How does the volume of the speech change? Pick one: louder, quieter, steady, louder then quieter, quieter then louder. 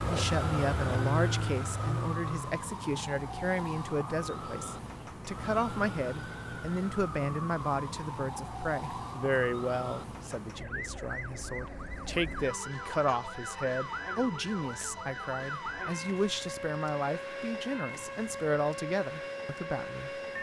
steady.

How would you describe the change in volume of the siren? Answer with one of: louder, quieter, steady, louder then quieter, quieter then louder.
steady.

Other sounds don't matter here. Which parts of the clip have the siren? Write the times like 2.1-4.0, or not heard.
0.0-20.3.